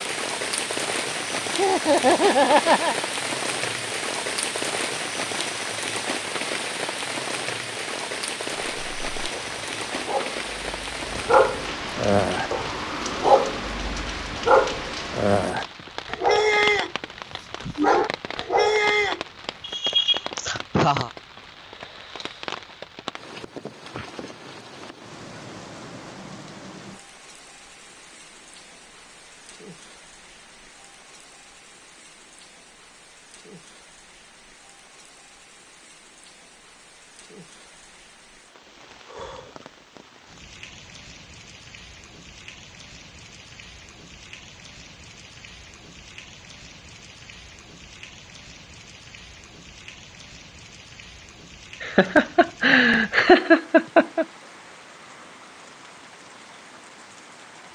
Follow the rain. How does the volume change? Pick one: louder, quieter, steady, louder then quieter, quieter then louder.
quieter.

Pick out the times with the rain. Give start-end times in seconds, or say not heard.
0.0-57.7.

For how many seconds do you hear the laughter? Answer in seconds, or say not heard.
5 s.